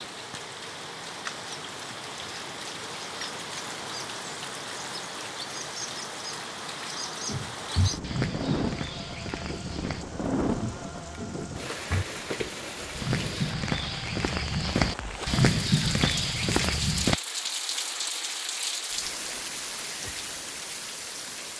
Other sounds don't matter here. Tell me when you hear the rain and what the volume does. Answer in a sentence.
The rain can be heard from 0.0 to 21.5 s, at a steady volume.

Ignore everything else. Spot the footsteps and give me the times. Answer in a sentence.
The footsteps can be heard from 7.2 to 17.1 s.